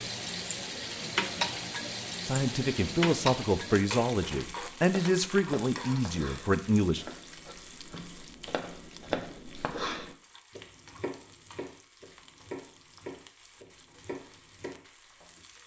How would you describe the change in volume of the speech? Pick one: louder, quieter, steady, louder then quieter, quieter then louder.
steady.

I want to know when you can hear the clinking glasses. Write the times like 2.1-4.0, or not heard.
not heard.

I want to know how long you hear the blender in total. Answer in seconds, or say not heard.
not heard.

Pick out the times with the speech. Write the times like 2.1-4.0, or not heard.
2.2-7.0.